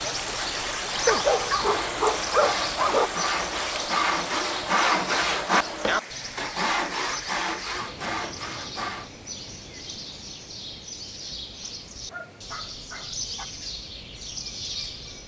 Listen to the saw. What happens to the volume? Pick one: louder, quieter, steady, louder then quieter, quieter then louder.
louder then quieter.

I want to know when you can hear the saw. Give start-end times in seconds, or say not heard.
0.2-9.1.